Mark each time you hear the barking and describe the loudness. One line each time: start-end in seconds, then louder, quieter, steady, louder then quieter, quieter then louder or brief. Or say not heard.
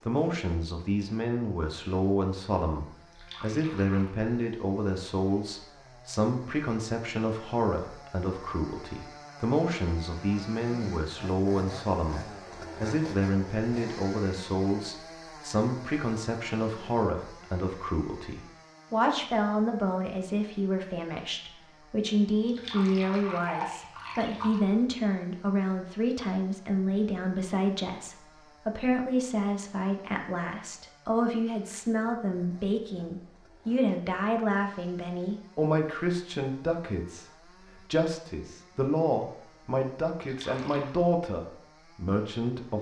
not heard.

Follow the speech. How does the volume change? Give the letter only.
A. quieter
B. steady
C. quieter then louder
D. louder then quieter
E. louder
B.